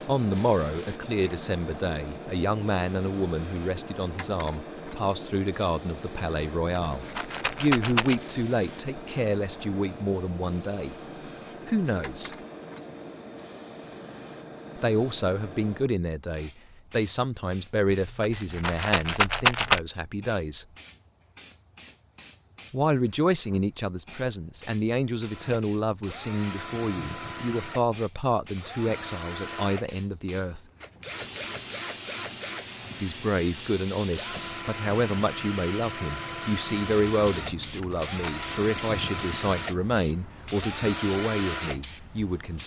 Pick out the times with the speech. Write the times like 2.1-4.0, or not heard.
0.1-10.9, 11.7-12.3, 14.8-20.6, 22.7-30.6, 33.0-42.6.